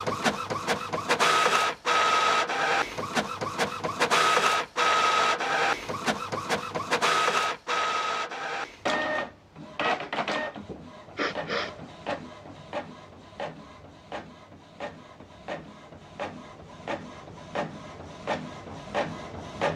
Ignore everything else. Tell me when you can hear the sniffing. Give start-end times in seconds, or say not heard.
10.7-11.8.